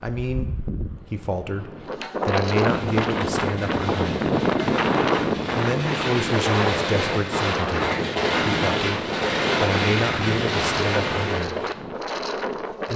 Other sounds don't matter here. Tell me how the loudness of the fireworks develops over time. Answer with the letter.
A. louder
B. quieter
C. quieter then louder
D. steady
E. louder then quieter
A.